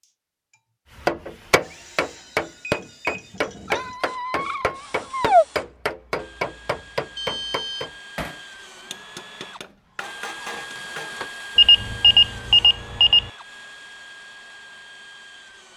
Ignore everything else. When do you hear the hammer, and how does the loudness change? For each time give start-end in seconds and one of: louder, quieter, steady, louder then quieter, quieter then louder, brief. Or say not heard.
0.9-11.2 quieter.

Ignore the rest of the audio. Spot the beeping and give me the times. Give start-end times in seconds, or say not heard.
1.7-3.3, 7.2-7.9, 11.6-13.3.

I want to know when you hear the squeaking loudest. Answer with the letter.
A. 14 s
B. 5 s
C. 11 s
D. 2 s
B.